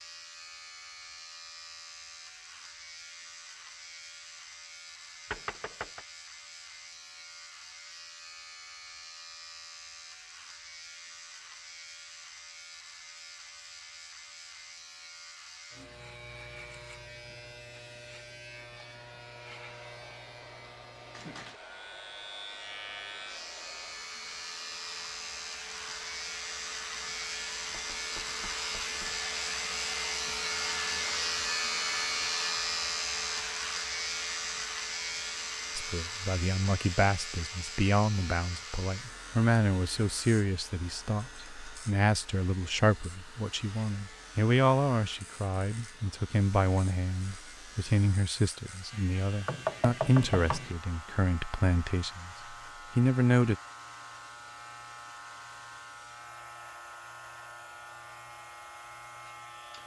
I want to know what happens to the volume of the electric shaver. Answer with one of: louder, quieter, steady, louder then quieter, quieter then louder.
louder then quieter.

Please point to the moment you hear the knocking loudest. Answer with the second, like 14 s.
50 s.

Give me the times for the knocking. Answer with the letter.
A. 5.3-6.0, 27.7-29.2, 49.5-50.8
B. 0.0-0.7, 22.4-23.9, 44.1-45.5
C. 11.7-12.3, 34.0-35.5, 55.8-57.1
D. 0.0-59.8
A.